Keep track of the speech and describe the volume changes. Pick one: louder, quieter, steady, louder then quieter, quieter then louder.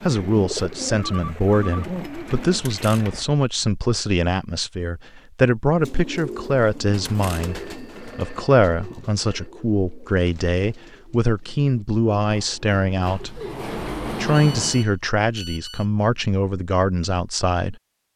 steady.